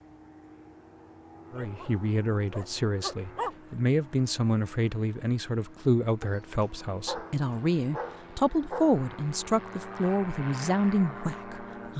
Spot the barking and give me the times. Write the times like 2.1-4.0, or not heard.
1.5-3.5, 6.2-9.0.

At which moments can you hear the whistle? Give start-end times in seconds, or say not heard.
not heard.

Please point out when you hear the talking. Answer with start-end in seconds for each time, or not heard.
1.5-11.9.